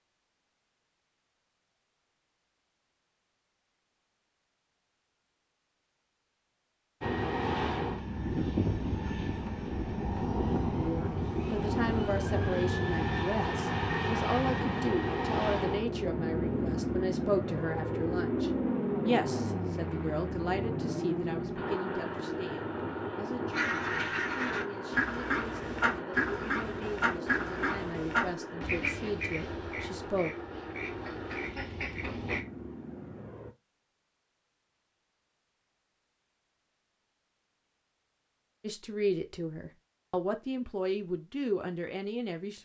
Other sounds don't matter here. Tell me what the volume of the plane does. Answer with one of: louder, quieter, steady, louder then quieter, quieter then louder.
quieter.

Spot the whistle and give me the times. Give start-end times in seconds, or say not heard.
not heard.